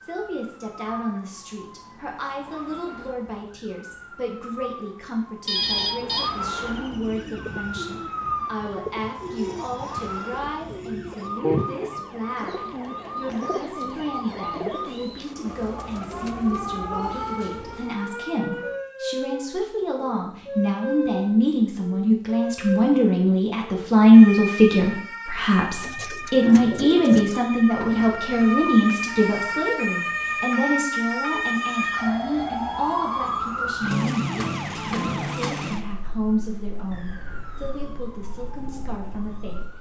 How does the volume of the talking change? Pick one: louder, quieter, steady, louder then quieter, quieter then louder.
louder then quieter.